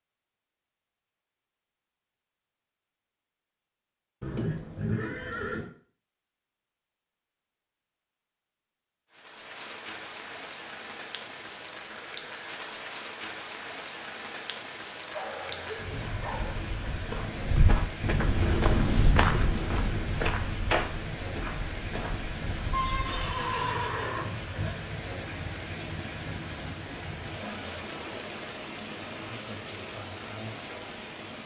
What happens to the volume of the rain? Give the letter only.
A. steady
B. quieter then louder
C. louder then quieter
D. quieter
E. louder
A.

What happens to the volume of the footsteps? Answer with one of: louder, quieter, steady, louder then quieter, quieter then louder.
louder then quieter.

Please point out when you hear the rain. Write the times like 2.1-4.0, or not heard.
9.1-31.4.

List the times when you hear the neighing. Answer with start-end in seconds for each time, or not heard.
4.2-5.7, 22.7-24.8.